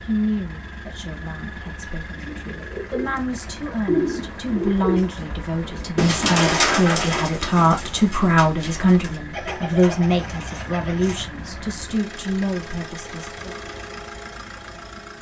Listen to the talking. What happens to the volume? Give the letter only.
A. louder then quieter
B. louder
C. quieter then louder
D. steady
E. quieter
A.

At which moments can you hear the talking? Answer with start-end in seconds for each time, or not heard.
0.1-13.4.